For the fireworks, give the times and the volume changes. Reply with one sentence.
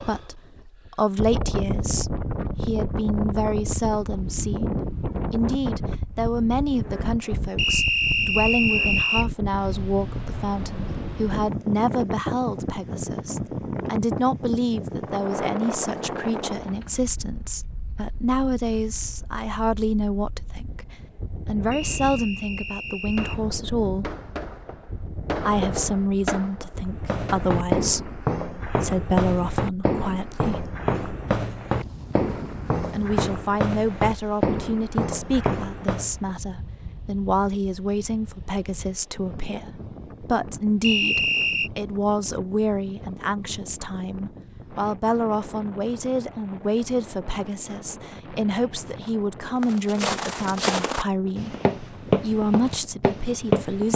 You can hear the fireworks from 23.1 to 27.5 s, getting louder then quieter.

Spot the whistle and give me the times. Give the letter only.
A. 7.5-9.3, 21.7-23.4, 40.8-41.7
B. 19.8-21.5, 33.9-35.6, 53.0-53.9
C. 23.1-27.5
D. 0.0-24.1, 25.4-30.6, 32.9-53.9
A.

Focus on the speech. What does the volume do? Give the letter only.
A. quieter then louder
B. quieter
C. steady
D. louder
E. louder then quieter
C.